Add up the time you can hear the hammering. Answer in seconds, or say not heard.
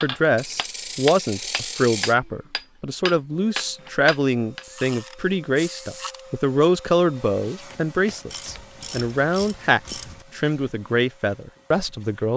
5 s.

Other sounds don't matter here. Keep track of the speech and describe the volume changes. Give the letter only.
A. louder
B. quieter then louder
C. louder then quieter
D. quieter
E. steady
E.